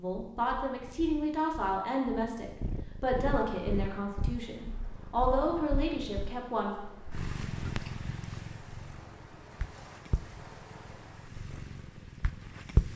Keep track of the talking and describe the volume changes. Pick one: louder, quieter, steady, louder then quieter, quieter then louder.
steady.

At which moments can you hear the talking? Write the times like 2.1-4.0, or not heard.
0.0-6.8.